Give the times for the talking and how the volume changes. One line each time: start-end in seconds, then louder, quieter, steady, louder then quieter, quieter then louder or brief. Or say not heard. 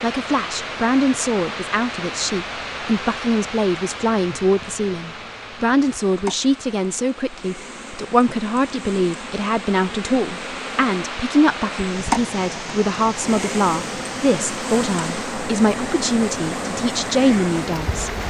0.0-18.1 steady.